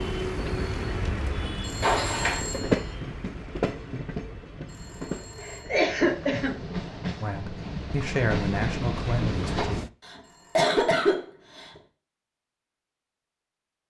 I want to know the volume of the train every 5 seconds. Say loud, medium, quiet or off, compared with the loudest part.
loud, loud, off.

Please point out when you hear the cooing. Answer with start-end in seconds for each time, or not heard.
not heard.